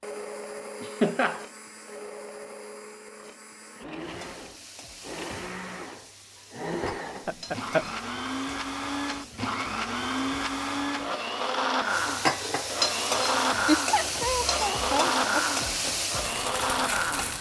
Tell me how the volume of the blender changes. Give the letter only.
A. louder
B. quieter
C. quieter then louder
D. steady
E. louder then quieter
A.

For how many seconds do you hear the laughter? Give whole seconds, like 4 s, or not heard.
3 s.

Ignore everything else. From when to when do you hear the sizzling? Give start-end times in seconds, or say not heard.
4.0-17.3.